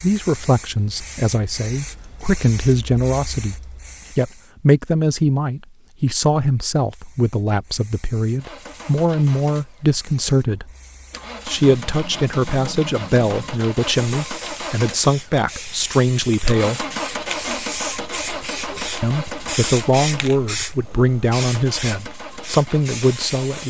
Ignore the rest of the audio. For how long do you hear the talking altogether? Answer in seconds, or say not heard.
21 s.